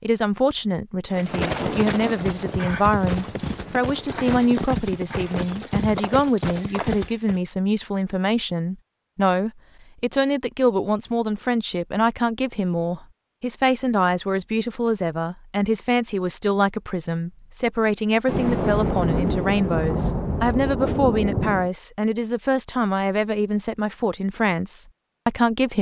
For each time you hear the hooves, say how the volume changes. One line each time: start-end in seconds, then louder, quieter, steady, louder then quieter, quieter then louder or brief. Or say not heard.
1.1-7.4 steady.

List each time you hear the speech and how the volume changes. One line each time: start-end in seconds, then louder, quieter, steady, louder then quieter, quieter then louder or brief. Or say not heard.
0.0-25.7 steady.